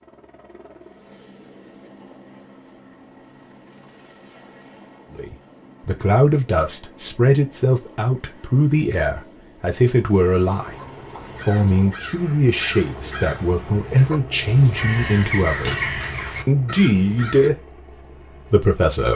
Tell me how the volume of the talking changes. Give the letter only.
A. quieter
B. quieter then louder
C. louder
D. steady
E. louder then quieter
D.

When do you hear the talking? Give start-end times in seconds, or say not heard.
5.2-19.1.